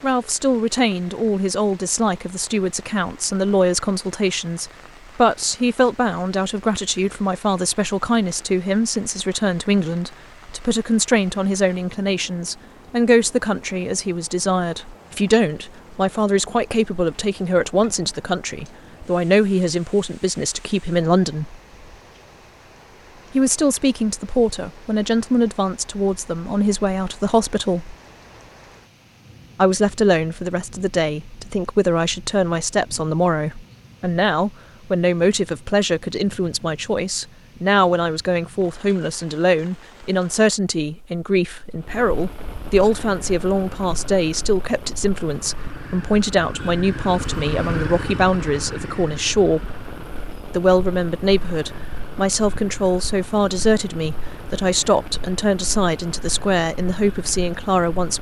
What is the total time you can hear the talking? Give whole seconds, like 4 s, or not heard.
54 s.